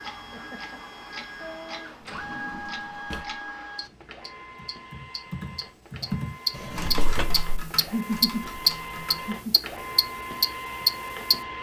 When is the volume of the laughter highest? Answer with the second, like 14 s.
8 s.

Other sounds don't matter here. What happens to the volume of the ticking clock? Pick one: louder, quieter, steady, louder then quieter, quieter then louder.
louder.